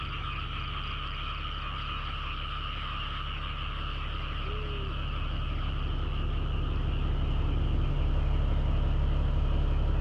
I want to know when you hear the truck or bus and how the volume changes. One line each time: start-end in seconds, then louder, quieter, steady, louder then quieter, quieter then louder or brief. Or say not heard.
0.0-9.9 louder.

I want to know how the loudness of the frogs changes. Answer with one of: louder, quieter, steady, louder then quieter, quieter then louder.
quieter.